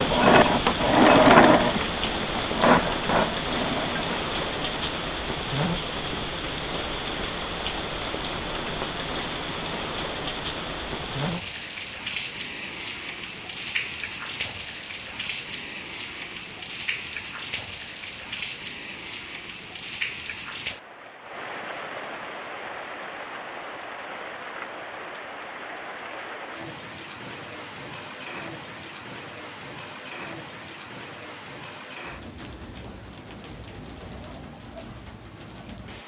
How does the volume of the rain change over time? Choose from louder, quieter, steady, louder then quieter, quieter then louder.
quieter.